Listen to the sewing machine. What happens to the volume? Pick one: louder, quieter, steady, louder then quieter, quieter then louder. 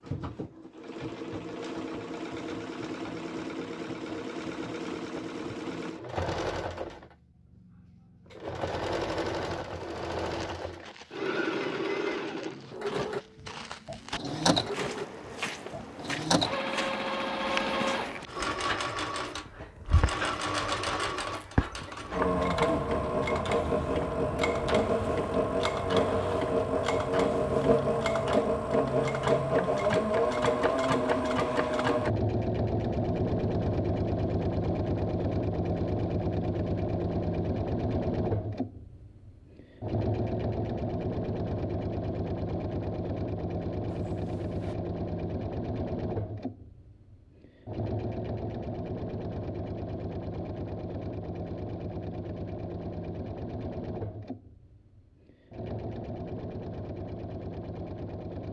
louder then quieter.